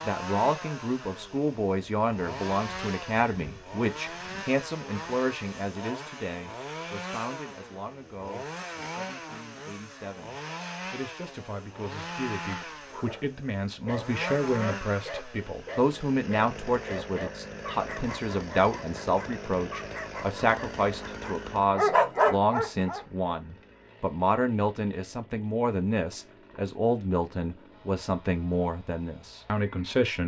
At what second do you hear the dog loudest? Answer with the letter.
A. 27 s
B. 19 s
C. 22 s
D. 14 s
C.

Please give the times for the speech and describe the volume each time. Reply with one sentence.
The speech can be heard from 0.0 to 30.2 s, getting quieter then louder.